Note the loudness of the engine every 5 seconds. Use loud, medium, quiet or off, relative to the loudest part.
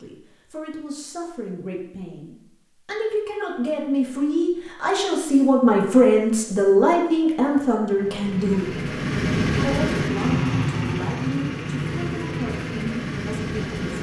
off, loud, loud.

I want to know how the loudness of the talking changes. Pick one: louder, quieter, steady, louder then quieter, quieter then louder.
louder then quieter.